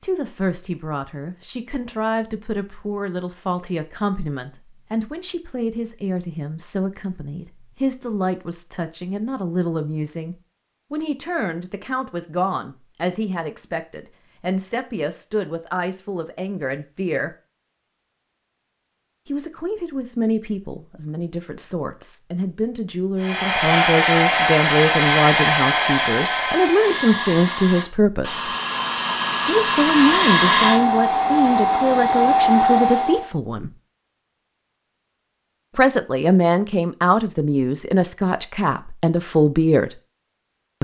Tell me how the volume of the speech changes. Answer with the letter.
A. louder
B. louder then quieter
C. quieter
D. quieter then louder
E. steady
A.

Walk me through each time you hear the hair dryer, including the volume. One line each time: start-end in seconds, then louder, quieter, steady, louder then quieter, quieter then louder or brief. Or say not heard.
23.2-33.3 quieter then louder.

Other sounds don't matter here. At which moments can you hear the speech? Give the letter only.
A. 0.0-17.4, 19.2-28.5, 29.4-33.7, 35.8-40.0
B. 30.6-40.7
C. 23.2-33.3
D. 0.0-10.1
A.